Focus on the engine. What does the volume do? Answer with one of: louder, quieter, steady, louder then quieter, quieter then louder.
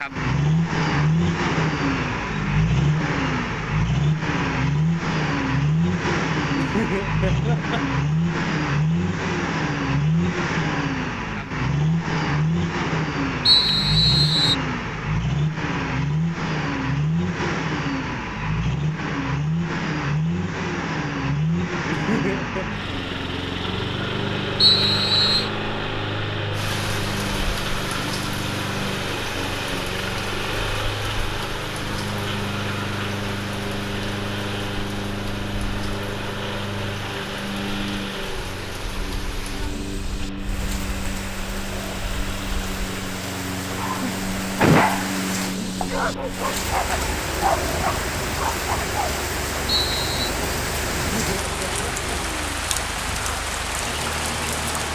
quieter.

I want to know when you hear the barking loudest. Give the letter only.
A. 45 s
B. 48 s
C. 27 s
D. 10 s
A.